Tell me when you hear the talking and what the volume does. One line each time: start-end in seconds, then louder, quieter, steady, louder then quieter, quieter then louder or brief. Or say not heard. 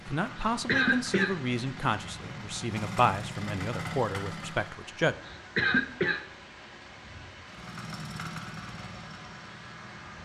0.1-5.2 steady.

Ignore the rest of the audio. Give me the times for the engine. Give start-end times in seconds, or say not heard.
0.0-4.8, 7.5-10.2.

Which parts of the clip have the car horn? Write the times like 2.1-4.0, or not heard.
not heard.